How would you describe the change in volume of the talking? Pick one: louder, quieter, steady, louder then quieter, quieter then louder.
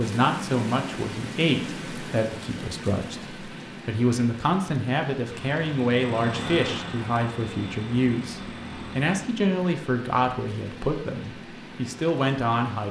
steady.